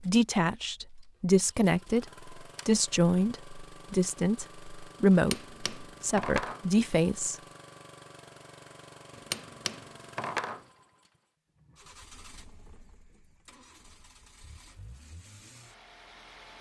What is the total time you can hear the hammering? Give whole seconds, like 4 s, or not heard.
3 s.